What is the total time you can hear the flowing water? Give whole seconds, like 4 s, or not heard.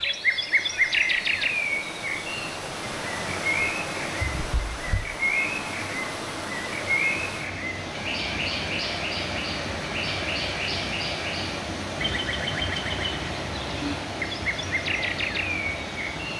16 s.